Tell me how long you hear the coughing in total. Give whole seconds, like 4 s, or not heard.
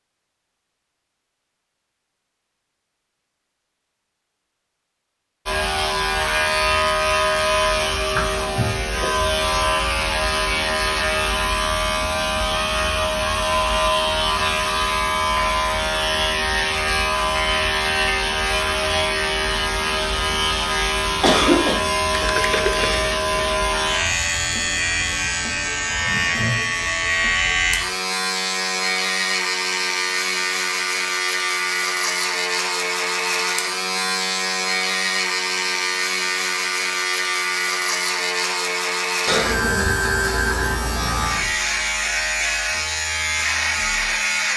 2 s.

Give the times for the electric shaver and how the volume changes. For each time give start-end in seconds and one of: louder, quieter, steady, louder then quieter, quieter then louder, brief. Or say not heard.
5.5-44.5 steady.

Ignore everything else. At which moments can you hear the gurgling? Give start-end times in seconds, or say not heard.
22.1-23.4.